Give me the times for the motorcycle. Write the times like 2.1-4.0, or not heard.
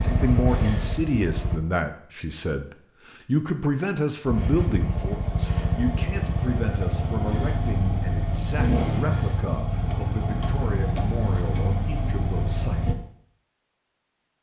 0.0-1.6, 4.2-12.9.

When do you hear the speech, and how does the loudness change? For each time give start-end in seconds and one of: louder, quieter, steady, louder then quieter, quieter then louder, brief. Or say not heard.
0.0-12.9 quieter.